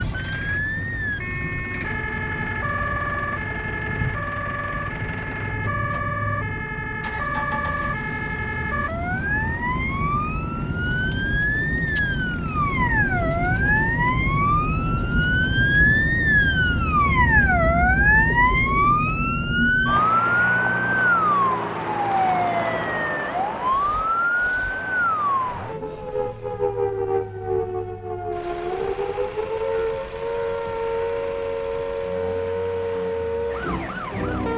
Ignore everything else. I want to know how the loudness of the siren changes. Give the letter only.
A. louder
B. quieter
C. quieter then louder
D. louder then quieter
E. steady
D.